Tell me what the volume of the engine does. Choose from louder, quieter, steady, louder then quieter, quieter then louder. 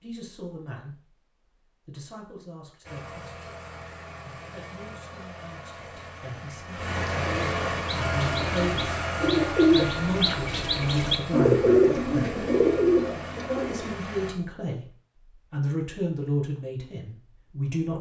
louder then quieter.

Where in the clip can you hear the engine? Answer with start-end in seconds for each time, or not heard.
2.8-14.3.